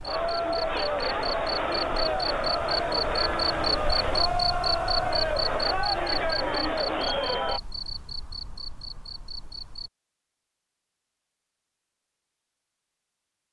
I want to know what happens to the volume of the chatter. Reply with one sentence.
The volume of the chatter stays about the same.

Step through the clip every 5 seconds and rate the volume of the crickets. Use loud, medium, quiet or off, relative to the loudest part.
loud, loud, off.